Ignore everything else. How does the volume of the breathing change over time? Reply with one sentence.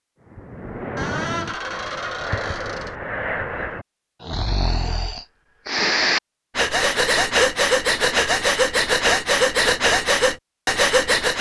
The loudness of the breathing goes up.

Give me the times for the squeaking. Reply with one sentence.
The squeaking can be heard from 0.9 to 3.0 s.